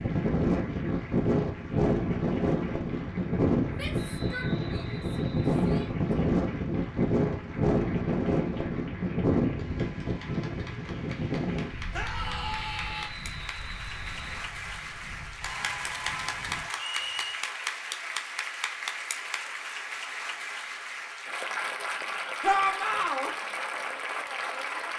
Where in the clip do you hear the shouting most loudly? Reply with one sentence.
The volume of the shouting peaks at 23 seconds.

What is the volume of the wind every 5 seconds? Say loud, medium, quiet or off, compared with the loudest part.
loud, loud, medium, quiet, off.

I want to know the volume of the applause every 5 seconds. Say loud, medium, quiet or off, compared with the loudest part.
quiet, quiet, medium, loud, loud.